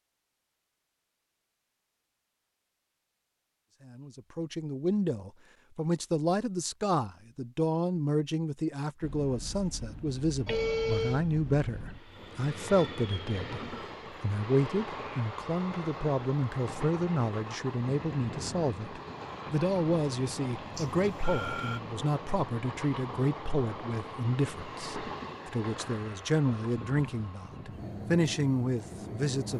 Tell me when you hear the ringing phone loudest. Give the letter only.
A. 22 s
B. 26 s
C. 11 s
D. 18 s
C.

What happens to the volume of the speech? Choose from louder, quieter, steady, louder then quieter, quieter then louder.
steady.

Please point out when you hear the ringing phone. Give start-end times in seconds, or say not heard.
10.4-11.2, 20.8-21.8.